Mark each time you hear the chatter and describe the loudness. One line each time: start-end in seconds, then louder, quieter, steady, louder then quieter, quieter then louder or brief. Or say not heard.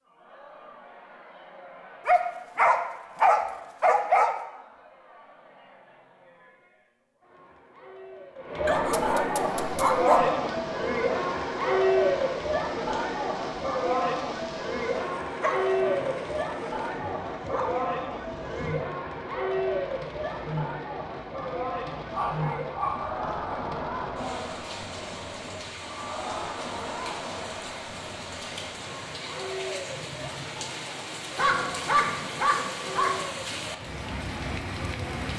0.0-35.3 louder then quieter.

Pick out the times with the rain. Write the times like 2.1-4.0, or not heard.
9.4-35.3.